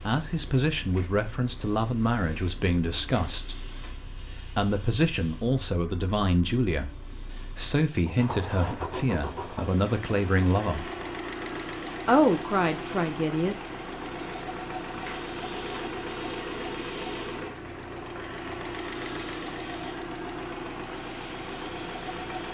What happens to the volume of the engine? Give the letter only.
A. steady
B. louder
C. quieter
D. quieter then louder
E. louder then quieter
B.